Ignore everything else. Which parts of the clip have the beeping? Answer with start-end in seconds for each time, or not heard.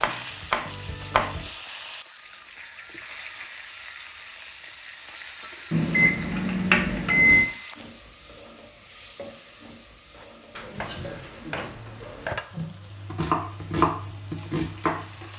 5.7-7.5.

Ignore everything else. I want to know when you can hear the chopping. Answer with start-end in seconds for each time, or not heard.
0.0-1.5, 10.2-15.3.